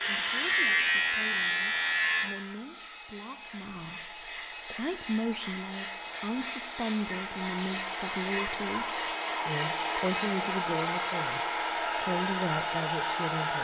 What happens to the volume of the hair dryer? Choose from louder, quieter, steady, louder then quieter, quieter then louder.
louder.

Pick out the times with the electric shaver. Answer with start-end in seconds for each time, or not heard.
0.0-2.2.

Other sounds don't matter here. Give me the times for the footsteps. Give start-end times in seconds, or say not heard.
not heard.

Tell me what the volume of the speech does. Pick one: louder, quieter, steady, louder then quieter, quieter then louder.
louder.